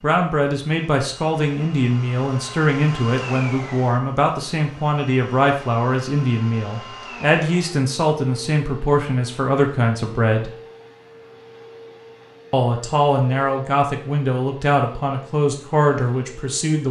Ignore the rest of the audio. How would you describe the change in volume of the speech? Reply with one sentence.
The volume of the speech stays about the same.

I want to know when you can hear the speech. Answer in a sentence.
You can hear the speech from 0.0 to 10.5 s and from 12.5 to 16.8 s.